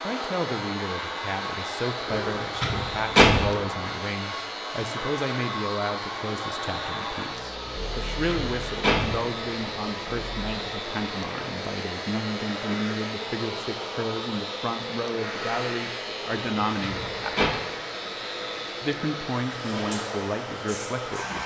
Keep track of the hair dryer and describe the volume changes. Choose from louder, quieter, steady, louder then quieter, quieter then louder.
steady.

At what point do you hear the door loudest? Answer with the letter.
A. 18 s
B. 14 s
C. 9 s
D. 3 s
D.